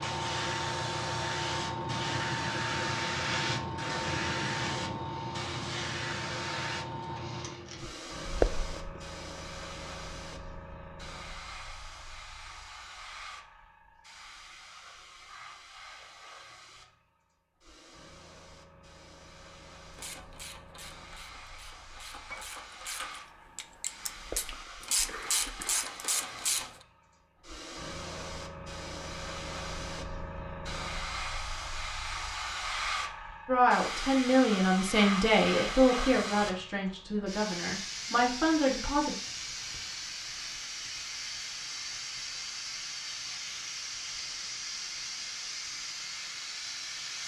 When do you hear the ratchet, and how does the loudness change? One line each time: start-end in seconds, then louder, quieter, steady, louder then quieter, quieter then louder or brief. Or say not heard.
19.9-26.6 louder.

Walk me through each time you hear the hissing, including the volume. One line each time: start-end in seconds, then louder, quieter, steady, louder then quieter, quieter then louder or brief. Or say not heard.
0.0-47.2 quieter then louder.